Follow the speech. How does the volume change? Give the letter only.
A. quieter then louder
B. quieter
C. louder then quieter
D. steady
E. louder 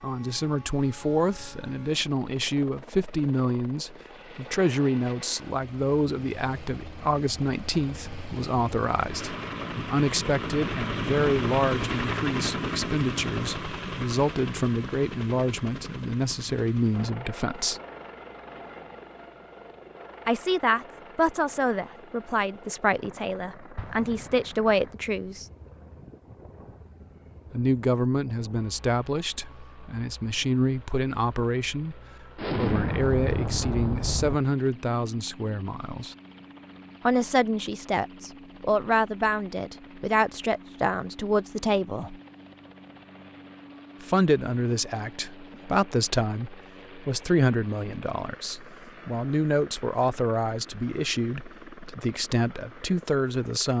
D.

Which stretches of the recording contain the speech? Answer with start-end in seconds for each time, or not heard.
0.0-17.8, 20.2-25.4, 27.5-36.1, 37.0-42.1, 44.0-53.7.